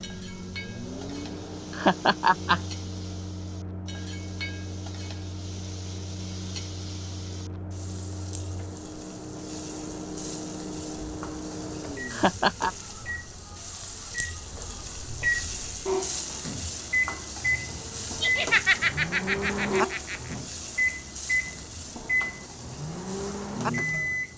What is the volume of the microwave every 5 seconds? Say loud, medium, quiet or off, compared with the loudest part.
medium, medium, medium, loud, loud.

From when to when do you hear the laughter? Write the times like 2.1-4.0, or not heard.
1.7-2.6, 12.1-12.7, 18.2-20.4.